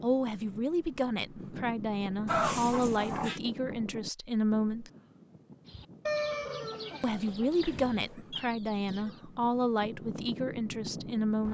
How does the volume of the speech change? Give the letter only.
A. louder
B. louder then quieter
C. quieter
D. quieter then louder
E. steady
E.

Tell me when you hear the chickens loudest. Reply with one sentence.
The volume of the chickens peaks at 6 seconds.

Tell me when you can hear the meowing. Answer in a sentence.
You can hear the meowing from 2.2 to 3.4 s and from 6.6 to 8.2 s.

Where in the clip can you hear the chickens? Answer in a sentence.
The chickens can be heard from 5.7 to 9.2 s.